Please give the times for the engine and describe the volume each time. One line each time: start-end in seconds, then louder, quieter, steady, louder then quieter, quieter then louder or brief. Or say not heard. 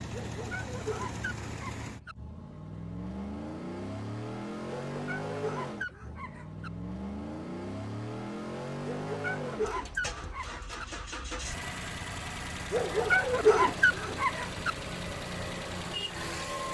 0.0-16.6 steady.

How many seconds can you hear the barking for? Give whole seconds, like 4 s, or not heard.
8 s.